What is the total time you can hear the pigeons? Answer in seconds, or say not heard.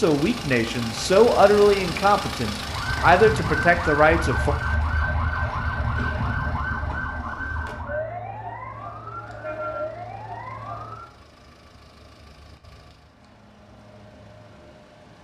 not heard.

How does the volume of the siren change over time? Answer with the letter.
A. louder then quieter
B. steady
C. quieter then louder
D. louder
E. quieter
E.